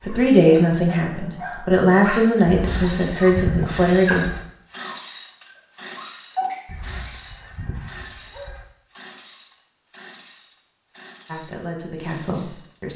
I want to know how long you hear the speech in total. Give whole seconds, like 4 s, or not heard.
6 s.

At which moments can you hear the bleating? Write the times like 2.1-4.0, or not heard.
not heard.